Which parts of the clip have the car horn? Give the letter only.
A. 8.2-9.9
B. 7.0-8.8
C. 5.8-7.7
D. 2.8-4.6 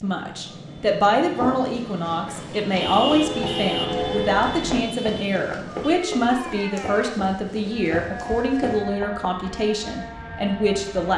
D.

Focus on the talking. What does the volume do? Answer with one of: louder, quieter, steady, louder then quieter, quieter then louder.
steady.